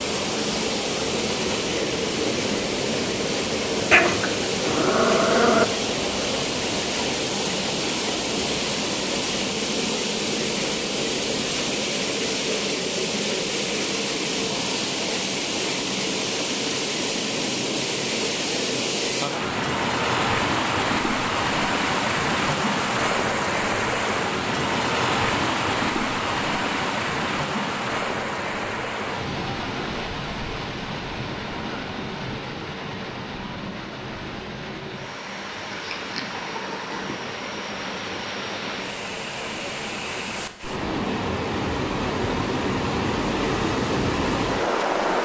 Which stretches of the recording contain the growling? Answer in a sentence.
You can hear the growling from 3.9 to 5.7 s and from 35.7 to 37.4 s.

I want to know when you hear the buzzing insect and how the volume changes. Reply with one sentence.
The buzzing insect can't be heard in this clip.